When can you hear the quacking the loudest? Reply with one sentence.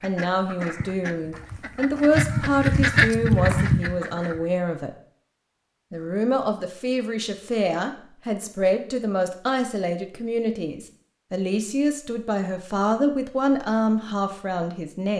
The loudest moment of the quacking is at 3 seconds.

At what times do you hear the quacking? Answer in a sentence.
You can hear the quacking from 0.0 to 4.5 s.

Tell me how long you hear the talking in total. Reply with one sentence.
You can hear the talking for 14 seconds altogether.